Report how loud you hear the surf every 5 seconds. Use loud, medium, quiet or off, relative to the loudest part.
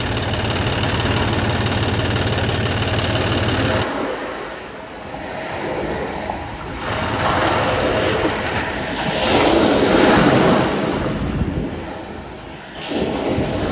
medium, loud, loud.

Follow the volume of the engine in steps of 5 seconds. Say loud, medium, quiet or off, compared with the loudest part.
loud, medium, off.